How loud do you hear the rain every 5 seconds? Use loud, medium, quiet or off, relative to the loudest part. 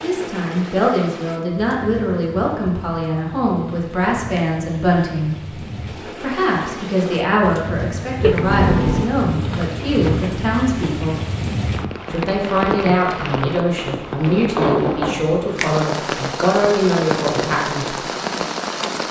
medium, medium, loud, loud.